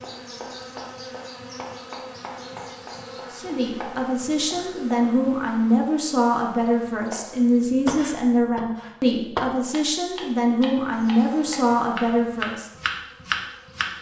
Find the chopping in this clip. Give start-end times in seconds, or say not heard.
0.0-5.0, 7.1-13.9.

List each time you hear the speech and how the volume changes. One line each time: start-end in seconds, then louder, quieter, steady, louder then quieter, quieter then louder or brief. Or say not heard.
3.3-12.7 steady.